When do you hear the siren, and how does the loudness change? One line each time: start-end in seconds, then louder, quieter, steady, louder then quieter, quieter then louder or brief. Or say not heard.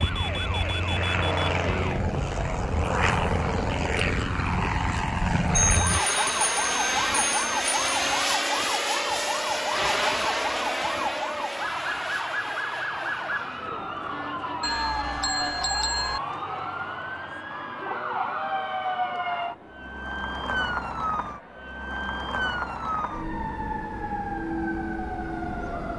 0.0-25.9 steady.